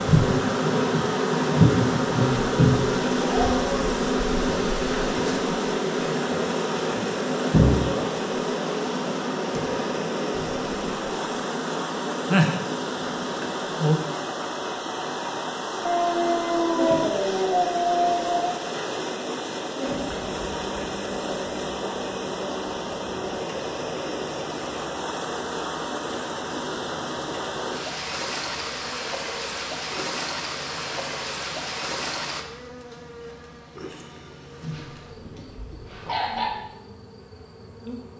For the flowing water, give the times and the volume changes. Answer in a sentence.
The flowing water can be heard from 0.0 to 32.5 s, at a steady volume.